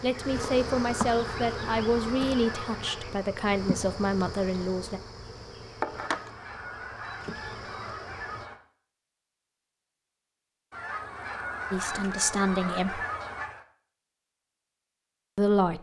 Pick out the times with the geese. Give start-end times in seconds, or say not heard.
0.1-3.1, 6.0-8.6, 10.7-13.7.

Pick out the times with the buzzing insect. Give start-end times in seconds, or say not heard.
0.0-8.4.